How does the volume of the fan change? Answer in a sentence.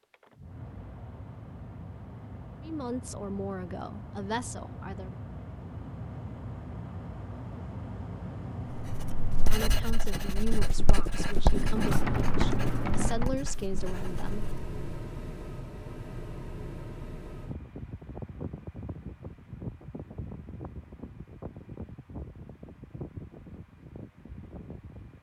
The loudness of the fan goes up, then down.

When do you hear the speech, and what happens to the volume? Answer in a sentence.
You can hear the speech briefly from 2.6 to 5.2 s; and from 9.4 to 14.4 s, getting quieter then louder.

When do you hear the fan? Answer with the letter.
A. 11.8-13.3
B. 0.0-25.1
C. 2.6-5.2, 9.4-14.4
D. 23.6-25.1
B.